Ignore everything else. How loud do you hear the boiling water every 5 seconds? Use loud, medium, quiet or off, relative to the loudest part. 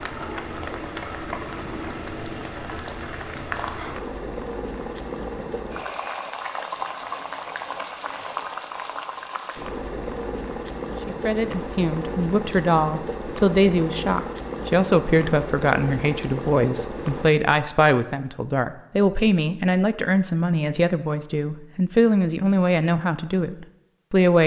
loud, loud, loud, loud, off.